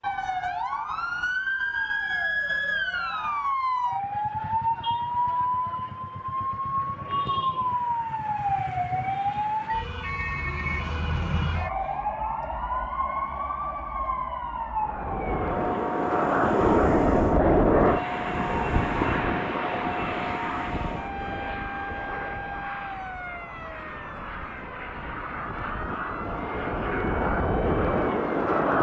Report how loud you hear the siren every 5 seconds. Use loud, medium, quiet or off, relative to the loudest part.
loud, loud, loud, medium, medium, quiet.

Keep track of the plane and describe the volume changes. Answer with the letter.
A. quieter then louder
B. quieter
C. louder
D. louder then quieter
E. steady
A.